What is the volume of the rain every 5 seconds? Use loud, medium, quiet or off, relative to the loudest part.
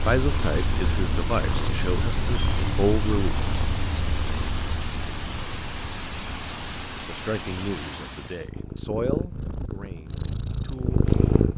loud, loud, off.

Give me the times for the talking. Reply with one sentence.
You can hear the talking from 0.0 to 3.4 s and from 7.0 to 11.2 s.